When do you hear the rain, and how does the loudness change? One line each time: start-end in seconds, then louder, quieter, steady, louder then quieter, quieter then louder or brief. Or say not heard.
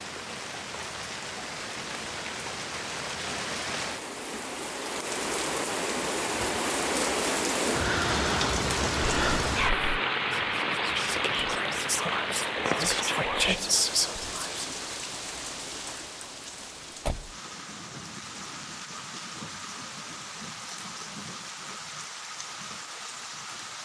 0.0-23.8 louder then quieter.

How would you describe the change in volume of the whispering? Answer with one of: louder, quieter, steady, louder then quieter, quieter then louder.
louder.